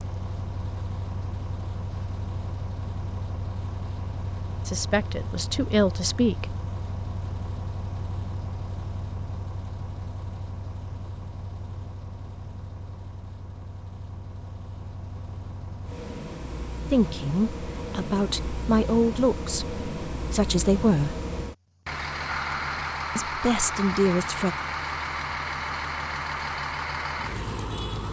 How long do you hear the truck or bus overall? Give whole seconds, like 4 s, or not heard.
28 s.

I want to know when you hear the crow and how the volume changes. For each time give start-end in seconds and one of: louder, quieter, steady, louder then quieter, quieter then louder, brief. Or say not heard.
not heard.